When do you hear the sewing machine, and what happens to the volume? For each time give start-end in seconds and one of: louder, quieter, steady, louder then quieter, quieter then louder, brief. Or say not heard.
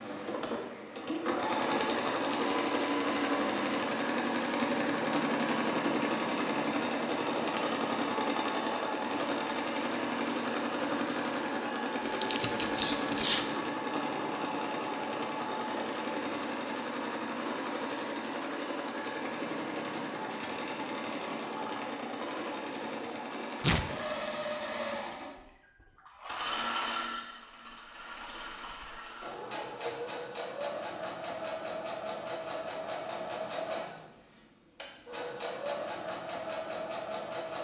0.0-37.5 quieter.